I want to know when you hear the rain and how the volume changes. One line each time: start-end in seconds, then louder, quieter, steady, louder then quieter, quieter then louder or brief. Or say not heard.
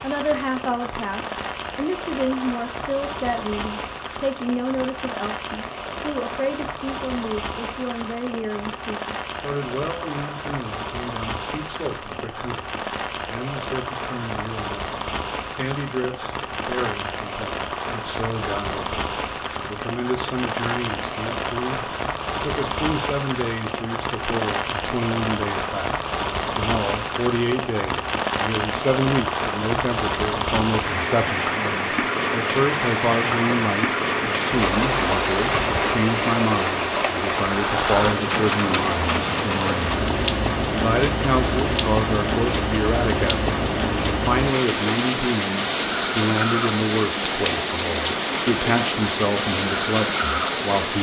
0.0-50.9 louder.